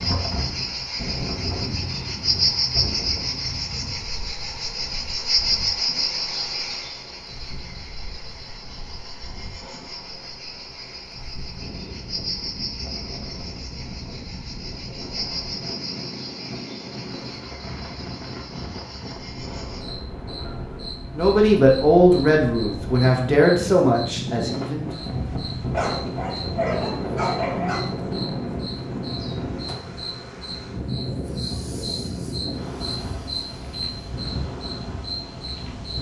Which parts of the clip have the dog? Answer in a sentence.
The dog can be heard from 25.7 to 27.9 s.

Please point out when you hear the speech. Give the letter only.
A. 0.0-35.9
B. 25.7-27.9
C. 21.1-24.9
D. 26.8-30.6
C.